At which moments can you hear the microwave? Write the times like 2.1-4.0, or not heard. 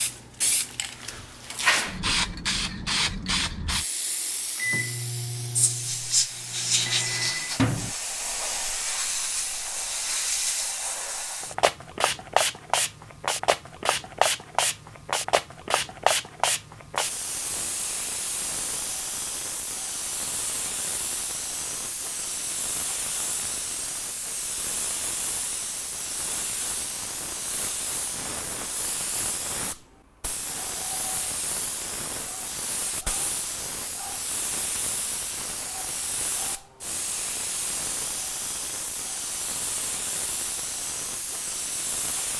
4.5-8.0.